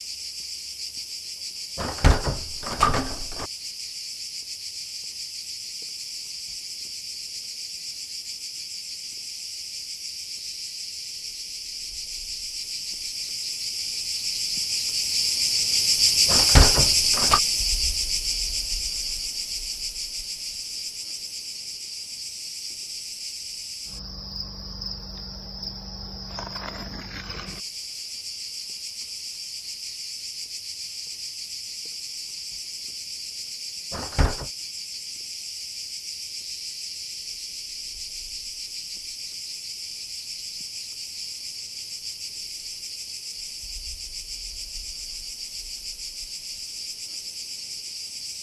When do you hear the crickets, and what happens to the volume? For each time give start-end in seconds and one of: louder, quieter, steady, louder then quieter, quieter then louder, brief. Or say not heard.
0.0-48.3 louder then quieter.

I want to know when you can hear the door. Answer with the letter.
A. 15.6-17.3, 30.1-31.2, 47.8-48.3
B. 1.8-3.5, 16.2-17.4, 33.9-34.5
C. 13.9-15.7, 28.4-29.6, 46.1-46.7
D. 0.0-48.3
B.